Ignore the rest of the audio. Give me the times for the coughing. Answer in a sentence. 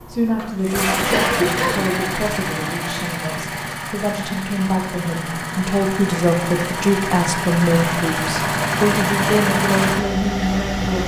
The coughing can be heard from 1.1 to 1.9 s.